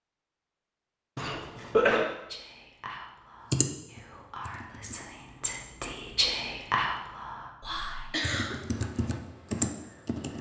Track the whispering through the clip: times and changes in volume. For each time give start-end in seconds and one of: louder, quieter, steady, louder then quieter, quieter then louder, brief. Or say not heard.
2.2-8.2 louder.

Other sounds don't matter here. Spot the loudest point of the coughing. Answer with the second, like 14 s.
2 s.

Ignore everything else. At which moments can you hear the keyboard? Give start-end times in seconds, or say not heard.
3.5-5.0, 8.2-10.3.